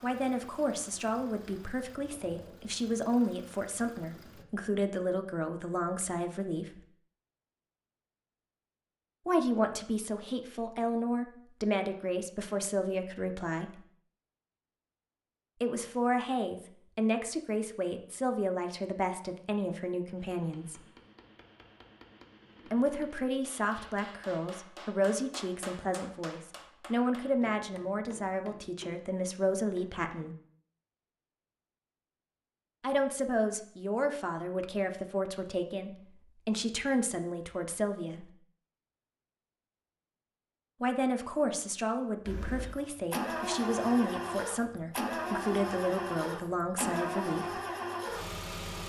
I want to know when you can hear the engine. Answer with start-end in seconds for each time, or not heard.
0.0-4.5, 42.2-48.8.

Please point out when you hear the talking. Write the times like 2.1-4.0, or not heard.
0.0-6.8, 9.2-13.8, 15.6-20.8, 22.7-30.4, 32.8-38.3, 40.8-47.6.